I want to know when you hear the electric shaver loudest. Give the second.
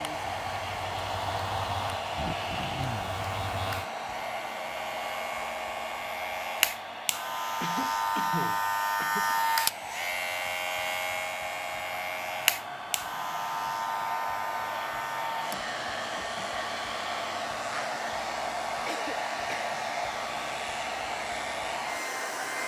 9 s.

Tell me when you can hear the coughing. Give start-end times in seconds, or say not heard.
2.1-3.1, 7.6-9.3, 18.9-19.8.